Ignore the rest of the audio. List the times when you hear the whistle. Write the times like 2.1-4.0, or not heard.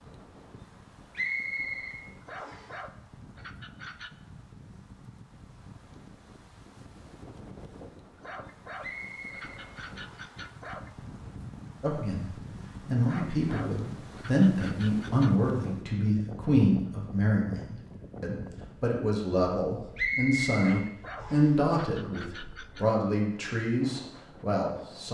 1.1-2.7, 8.8-10.3, 19.9-21.6.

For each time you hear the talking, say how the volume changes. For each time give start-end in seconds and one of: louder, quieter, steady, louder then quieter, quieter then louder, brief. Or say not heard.
11.8-25.0 steady.